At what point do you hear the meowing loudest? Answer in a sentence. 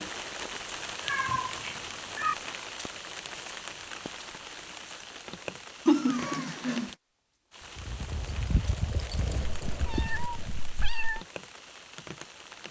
The loudest moment of the meowing is at 6 seconds.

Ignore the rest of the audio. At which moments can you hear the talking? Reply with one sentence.
The talking can't be heard in this clip.